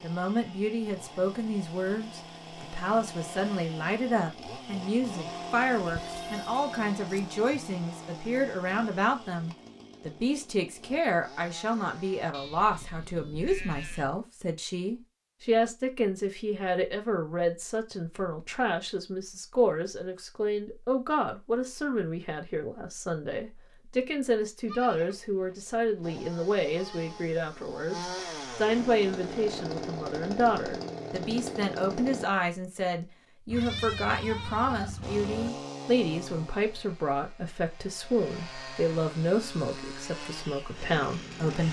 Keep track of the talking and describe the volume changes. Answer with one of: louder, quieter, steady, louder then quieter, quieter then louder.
steady.